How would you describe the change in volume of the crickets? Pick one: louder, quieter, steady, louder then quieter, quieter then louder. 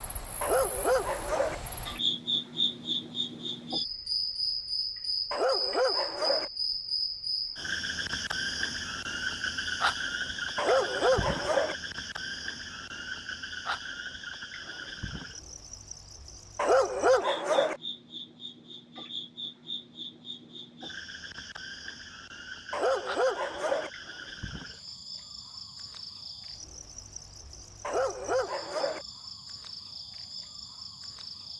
quieter.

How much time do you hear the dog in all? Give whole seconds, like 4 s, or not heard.
7 s.